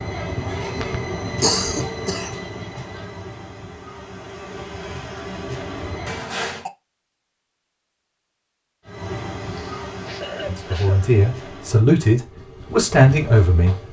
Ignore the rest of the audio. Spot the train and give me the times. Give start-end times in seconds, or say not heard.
0.0-6.3, 8.8-13.8.